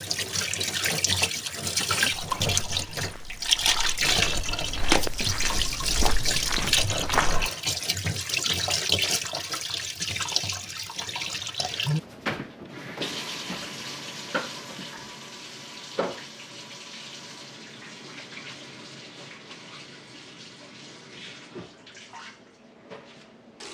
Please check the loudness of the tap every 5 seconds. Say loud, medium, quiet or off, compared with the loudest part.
loud, loud, medium, quiet, quiet.